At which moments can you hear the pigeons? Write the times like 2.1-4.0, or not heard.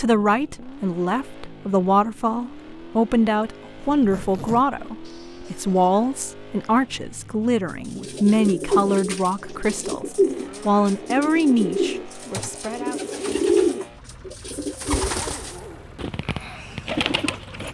8.0-17.6.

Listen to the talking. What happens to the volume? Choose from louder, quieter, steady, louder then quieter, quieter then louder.
steady.